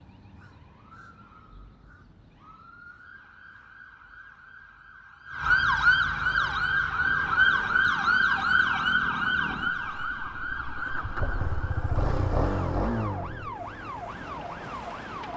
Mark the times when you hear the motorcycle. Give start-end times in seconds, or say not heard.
6.2-13.6.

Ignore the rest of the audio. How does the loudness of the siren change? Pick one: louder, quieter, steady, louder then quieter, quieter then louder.
louder then quieter.